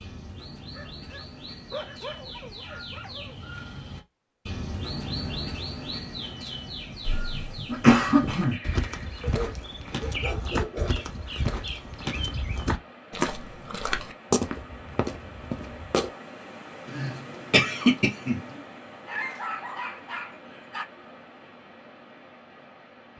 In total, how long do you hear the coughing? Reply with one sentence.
You can hear the coughing for 3 seconds altogether.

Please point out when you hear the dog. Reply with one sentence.
The dog can be heard from 0.7 to 3.4 s, from 9.2 to 11.1 s and from 19.1 to 20.9 s.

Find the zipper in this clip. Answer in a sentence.
You can't hear the zipper here.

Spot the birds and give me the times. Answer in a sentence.
The birds can be heard from 0.0 to 12.8 s.